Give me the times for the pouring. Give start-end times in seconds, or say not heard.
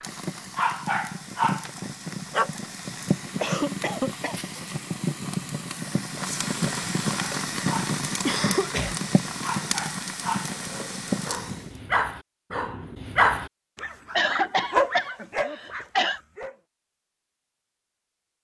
not heard.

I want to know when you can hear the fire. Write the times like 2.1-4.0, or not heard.
0.0-11.8.